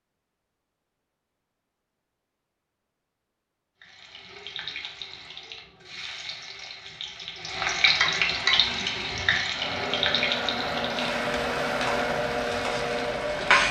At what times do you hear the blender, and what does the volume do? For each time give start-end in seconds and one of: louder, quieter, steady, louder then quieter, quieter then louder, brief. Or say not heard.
8.4-13.6 louder.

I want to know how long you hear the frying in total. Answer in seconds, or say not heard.
10 s.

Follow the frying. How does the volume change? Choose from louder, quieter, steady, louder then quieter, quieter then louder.
louder then quieter.